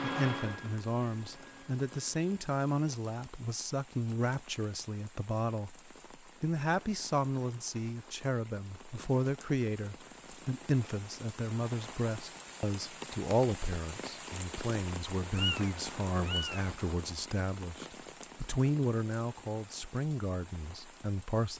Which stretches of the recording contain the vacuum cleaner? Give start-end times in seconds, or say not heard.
0.0-2.4.